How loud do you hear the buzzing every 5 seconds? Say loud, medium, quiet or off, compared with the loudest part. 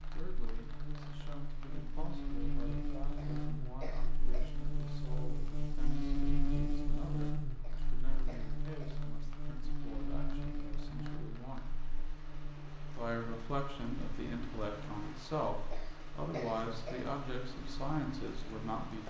loud, loud, medium, medium.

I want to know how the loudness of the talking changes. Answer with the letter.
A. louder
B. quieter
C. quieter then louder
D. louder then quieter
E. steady
A.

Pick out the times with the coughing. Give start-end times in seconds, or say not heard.
3.1-4.7, 7.6-9.1, 15.7-17.1.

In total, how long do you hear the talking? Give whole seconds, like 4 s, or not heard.
18 s.